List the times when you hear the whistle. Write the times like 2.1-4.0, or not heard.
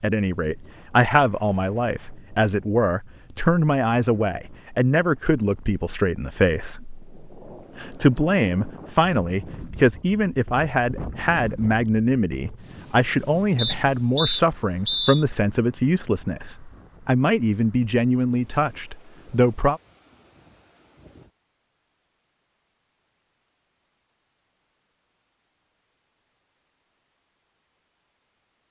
13.6-15.2.